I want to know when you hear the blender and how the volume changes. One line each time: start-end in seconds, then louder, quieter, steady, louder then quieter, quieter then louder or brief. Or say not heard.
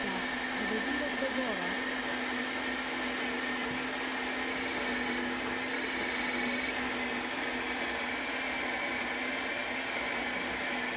0.0-10.9 steady.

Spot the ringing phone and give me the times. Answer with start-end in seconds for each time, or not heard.
4.5-6.9.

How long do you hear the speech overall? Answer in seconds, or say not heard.
2 s.